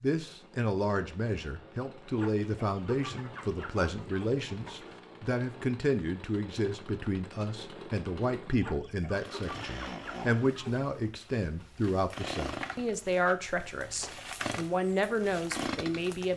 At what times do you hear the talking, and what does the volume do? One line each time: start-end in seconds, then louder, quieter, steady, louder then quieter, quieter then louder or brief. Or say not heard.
0.0-16.3 steady.